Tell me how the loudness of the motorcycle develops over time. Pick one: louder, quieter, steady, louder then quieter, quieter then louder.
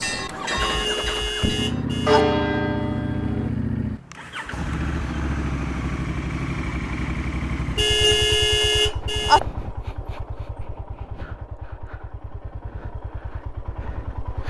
quieter.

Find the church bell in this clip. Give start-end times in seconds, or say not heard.
0.0-3.5.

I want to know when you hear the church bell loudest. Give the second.
2 s.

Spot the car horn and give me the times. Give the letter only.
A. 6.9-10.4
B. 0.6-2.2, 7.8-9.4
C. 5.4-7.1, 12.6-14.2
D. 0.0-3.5
B.